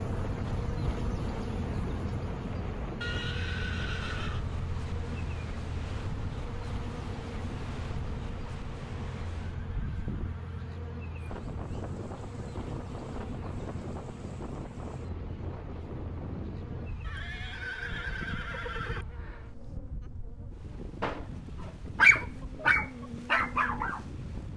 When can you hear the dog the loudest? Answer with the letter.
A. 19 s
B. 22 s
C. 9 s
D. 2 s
B.